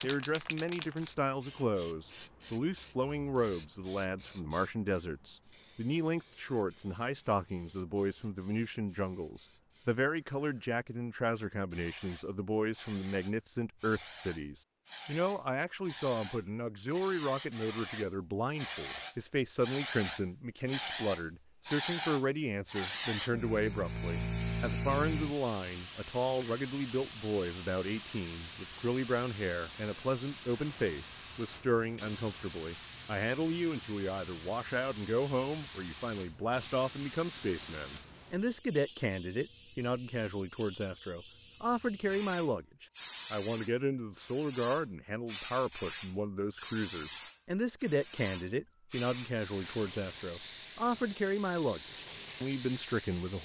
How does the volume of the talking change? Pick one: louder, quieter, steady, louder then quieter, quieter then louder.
steady.